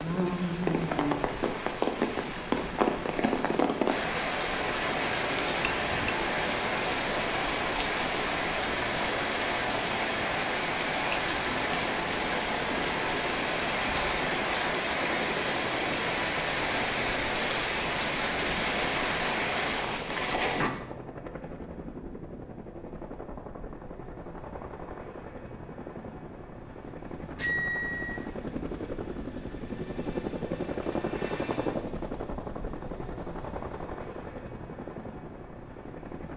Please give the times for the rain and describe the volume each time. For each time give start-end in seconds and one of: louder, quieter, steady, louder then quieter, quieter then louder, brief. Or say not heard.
0.0-20.7 steady.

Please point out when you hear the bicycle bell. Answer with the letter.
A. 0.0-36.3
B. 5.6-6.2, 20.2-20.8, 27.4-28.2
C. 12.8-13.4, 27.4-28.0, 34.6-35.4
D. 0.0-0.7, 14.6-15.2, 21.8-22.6
B.